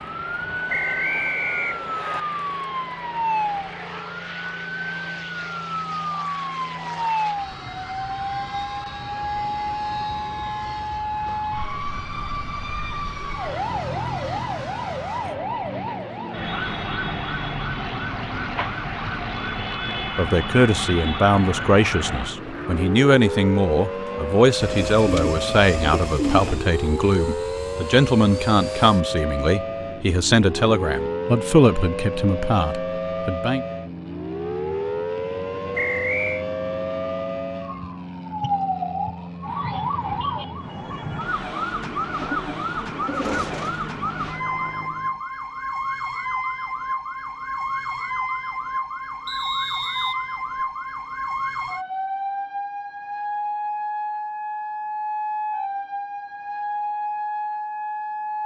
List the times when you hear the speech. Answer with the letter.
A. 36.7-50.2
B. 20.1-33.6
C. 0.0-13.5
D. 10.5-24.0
B.